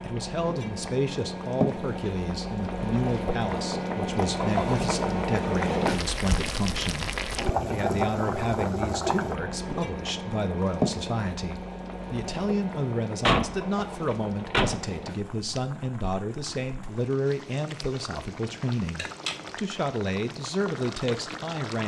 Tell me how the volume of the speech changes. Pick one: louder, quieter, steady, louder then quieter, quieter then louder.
steady.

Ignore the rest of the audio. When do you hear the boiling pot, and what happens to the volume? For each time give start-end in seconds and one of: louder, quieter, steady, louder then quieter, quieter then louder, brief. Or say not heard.
0.0-21.8 quieter.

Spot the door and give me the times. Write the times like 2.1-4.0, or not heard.
13.2-14.8.